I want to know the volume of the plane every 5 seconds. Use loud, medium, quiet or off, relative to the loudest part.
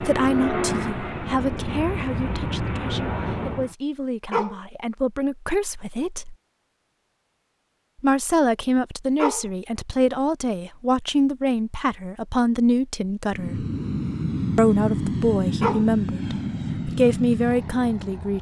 loud, off, loud, loud.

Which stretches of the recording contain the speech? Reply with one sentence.
The speech can be heard from 0.0 to 6.3 s, from 8.0 to 13.7 s and from 14.6 to 18.3 s.